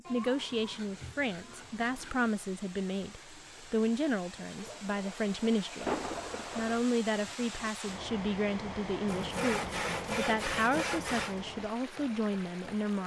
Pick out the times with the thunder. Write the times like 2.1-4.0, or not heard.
5.8-6.8.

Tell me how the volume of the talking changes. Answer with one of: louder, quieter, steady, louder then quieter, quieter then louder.
steady.